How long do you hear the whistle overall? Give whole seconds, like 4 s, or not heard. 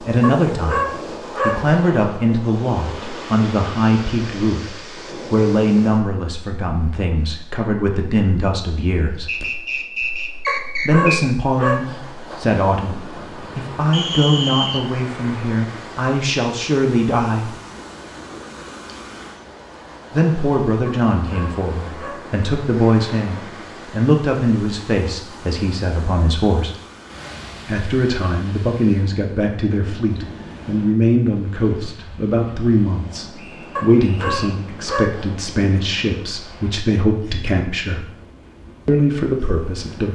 4 s.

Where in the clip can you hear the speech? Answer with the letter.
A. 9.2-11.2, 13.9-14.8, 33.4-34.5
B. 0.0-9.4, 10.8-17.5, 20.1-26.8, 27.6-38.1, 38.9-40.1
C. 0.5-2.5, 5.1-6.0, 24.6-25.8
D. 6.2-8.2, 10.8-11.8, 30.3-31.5
B.